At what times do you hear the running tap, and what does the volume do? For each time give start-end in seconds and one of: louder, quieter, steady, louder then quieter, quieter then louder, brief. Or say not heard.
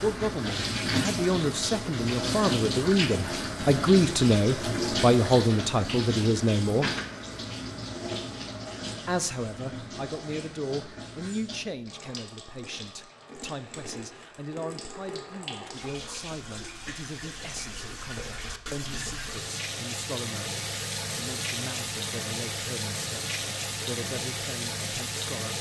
0.0-25.5 quieter then louder.